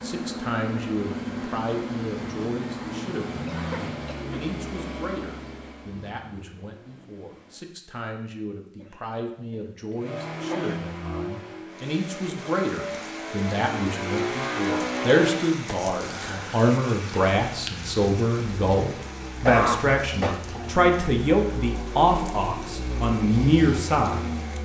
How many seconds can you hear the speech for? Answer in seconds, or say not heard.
24 s.